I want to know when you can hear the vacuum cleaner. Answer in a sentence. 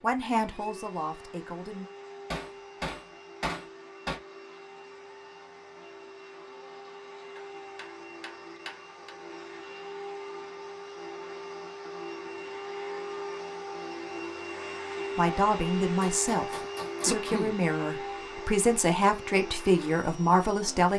You can hear the vacuum cleaner from 0.0 to 20.9 s.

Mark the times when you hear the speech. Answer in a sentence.
The speech can be heard from 0.0 to 1.9 s and from 15.2 to 20.9 s.